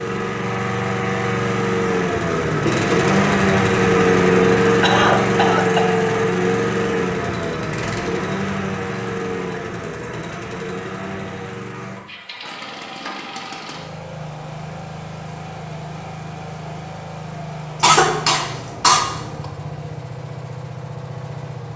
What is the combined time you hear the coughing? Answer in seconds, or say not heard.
3 s.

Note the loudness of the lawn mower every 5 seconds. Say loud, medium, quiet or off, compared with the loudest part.
loud, loud, quiet, quiet, quiet.